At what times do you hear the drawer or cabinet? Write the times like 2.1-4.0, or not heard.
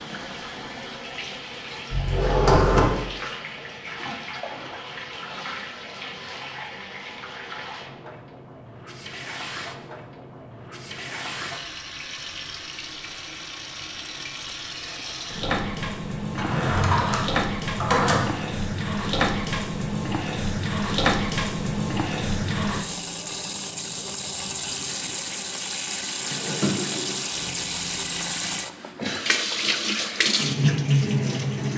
1.9-3.0, 16.4-18.2, 26.2-27.4.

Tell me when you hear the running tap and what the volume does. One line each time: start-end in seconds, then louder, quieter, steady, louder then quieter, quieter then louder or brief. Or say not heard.
0.0-31.7 louder.